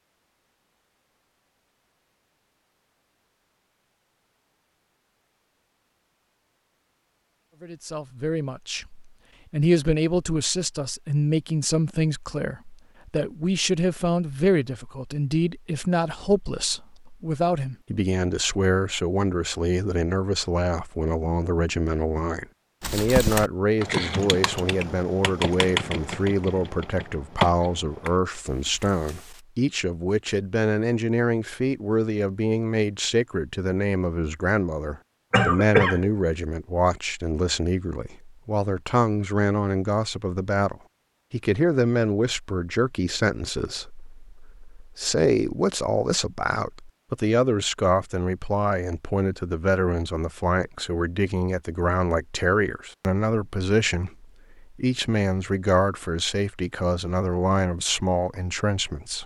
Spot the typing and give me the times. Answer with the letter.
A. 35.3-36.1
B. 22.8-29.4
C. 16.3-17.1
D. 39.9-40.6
B.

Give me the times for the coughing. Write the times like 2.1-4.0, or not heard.
35.3-36.1.